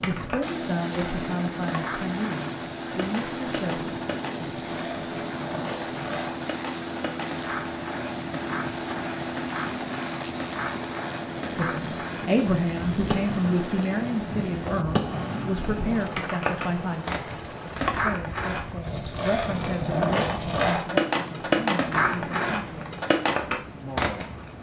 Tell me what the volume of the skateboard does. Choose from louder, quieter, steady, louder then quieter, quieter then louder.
louder.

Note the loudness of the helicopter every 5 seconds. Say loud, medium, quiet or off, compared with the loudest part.
loud, loud, loud, medium, medium.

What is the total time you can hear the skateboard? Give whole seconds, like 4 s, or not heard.
24 s.